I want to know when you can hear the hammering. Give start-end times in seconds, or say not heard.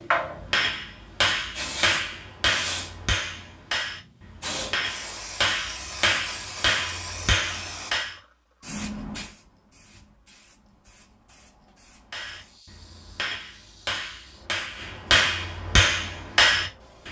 0.2-8.2, 12.1-17.0.